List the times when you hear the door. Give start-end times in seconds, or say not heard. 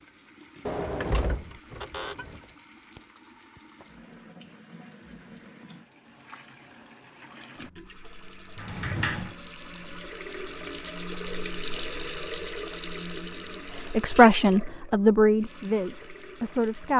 0.7-2.4, 8.6-9.3.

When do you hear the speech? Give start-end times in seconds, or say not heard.
13.8-16.9.